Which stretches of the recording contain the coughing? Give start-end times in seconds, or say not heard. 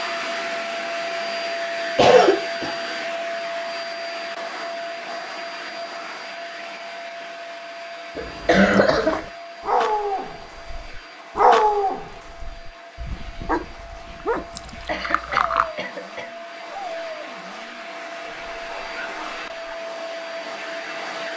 1.9-2.7, 8.2-9.2, 14.8-16.3.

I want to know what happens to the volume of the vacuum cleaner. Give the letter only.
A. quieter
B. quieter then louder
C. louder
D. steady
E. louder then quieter
B.